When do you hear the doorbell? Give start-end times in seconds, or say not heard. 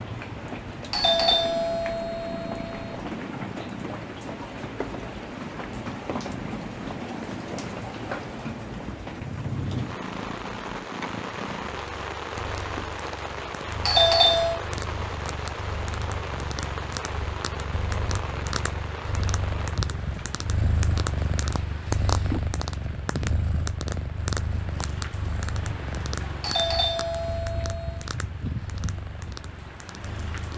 0.9-3.0, 13.8-14.6, 26.4-28.1.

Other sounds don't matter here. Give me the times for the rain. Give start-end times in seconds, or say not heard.
0.0-30.5.